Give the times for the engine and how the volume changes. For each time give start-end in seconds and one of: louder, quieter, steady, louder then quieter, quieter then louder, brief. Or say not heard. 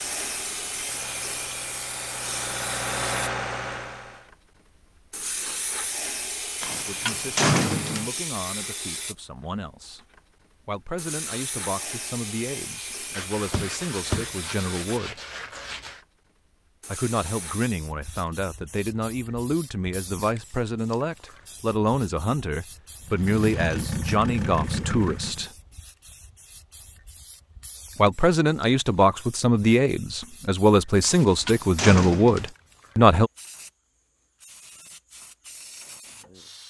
0.0-4.3 louder
23.1-25.5 brief.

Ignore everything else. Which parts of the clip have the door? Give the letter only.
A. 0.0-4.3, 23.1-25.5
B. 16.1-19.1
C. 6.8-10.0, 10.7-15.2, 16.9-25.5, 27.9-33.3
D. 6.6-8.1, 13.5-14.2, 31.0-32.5
D.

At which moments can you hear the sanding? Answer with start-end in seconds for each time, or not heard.
13.1-16.1.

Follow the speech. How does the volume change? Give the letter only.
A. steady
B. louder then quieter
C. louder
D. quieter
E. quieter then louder
C.